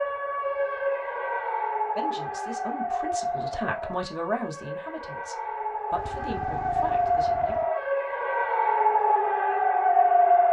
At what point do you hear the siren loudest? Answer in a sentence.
The loudest moment of the siren is at 10 seconds.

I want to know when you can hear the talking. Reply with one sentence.
You can hear the talking from 1.9 to 7.5 s.